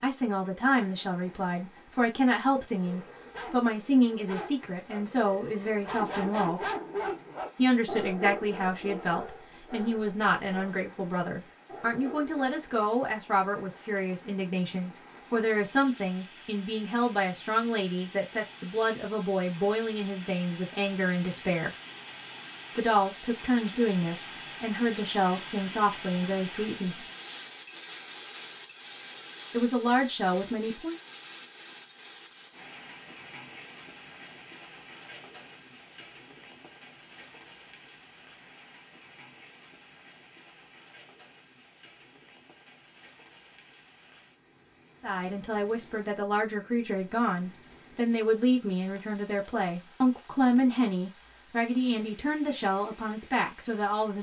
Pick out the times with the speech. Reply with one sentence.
The speech can be heard from 0.0 to 6.7 s, from 7.5 to 21.7 s, from 22.8 to 27.1 s, from 29.5 to 30.9 s and from 45.0 to 54.1 s.